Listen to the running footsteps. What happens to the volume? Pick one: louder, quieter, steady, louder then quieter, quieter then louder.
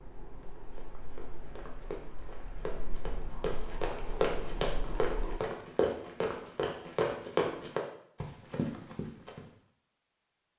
louder.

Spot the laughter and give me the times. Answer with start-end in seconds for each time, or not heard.
not heard.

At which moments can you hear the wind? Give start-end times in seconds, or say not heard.
0.0-5.4.